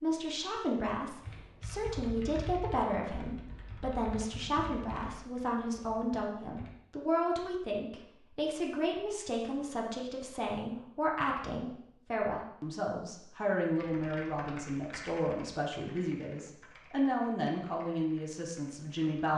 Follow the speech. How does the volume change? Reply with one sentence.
The loudness of the speech stays about the same.